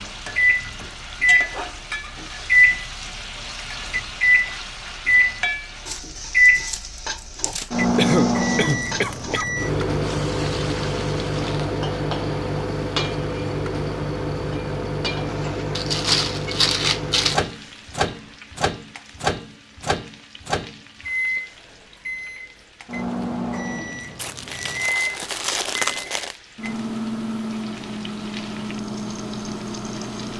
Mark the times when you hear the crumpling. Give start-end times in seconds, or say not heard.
5.8-7.7, 15.8-17.4, 24.1-26.4.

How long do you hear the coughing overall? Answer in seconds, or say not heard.
2 s.